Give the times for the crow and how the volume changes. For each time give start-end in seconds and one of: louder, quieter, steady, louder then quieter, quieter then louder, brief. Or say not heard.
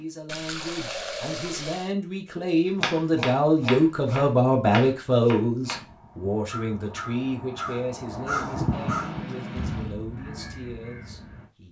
5.7-11.5 louder then quieter.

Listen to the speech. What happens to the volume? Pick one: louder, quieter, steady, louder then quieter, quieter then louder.
louder then quieter.